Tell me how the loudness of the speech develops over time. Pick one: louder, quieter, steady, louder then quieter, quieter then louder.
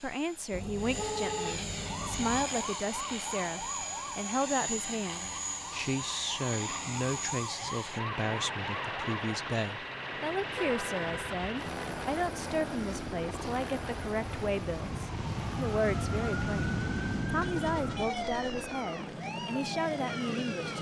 steady.